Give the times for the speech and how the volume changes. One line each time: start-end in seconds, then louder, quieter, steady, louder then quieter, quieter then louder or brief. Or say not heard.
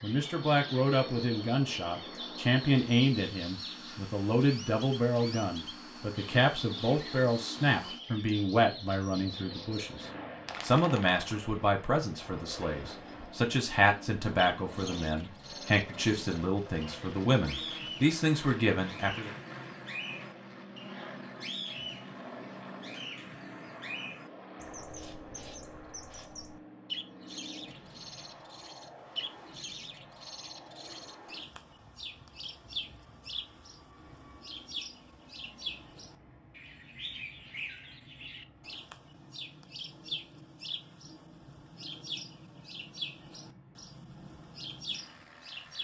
0.0-19.3 steady.